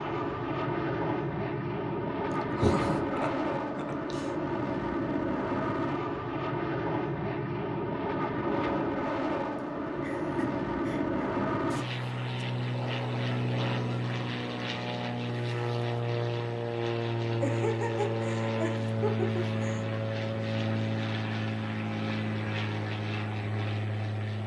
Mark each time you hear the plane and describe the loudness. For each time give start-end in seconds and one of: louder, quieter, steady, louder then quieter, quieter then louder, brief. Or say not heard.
0.0-24.4 steady.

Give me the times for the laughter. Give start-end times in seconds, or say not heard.
2.5-4.3, 9.6-11.2, 17.4-19.9.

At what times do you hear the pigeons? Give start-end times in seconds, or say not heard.
not heard.